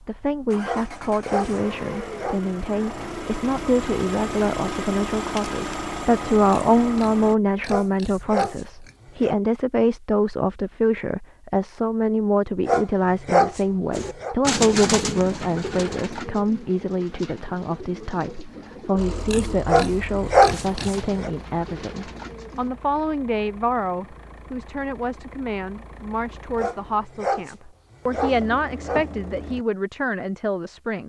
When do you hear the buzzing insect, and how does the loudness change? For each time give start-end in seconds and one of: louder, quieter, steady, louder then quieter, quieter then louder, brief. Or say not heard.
not heard.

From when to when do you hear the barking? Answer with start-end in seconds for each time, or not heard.
0.6-2.4, 7.7-9.3, 12.7-14.3, 19.6-21.3, 26.6-29.1.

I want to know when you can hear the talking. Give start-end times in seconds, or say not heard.
0.0-31.0.